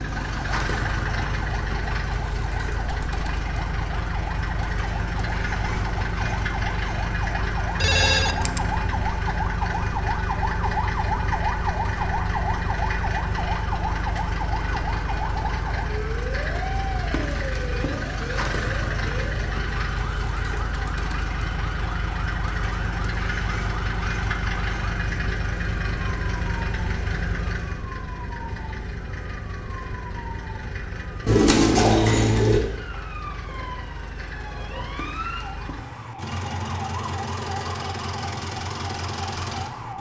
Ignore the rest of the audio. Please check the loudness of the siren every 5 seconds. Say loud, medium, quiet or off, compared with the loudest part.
medium, loud, loud, medium, medium, medium, medium, medium.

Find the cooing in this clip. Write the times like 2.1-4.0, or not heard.
31.2-32.6.